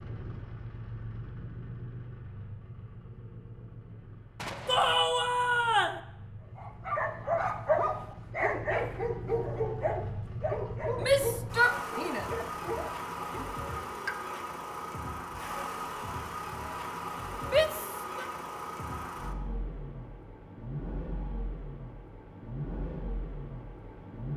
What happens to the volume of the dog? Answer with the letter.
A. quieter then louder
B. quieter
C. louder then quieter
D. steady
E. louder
B.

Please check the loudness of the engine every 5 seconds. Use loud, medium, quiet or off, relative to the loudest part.
medium, medium, loud, loud, loud.